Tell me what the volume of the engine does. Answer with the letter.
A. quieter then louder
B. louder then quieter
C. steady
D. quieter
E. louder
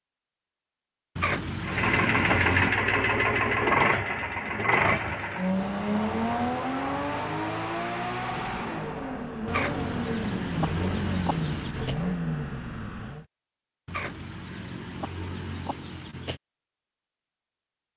D.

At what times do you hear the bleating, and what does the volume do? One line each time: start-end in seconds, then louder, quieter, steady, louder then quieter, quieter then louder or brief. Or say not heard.
not heard.